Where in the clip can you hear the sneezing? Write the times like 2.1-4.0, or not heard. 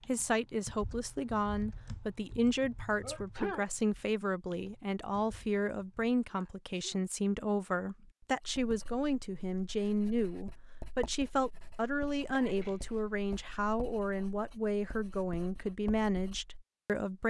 3.0-3.6, 6.2-7.0, 11.8-13.1.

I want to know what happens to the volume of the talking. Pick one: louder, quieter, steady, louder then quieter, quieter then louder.
steady.